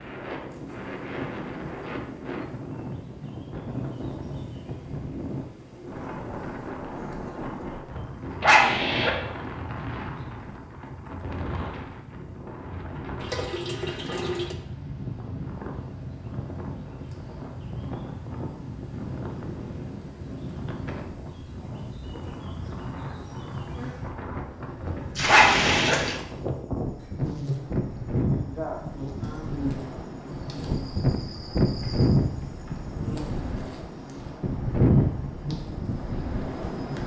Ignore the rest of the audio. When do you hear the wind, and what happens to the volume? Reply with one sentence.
You can hear the wind from 0.0 to 37.0 s, getting louder.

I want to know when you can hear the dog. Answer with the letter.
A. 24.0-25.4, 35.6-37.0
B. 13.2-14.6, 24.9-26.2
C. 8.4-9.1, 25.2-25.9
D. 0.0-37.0
C.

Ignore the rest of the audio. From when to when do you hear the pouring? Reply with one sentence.
The pouring can be heard from 13.2 to 14.6 s and from 24.9 to 26.2 s.